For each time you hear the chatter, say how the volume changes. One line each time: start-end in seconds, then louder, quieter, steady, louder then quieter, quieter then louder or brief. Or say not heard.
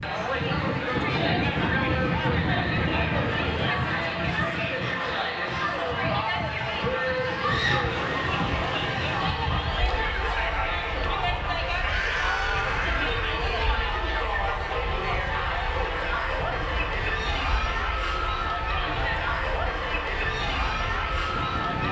0.0-21.8 steady.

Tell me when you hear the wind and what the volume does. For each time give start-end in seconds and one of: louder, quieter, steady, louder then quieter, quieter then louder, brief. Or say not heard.
0.0-21.8 quieter.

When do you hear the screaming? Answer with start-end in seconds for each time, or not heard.
7.4-7.9, 11.8-13.4.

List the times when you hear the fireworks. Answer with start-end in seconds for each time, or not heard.
not heard.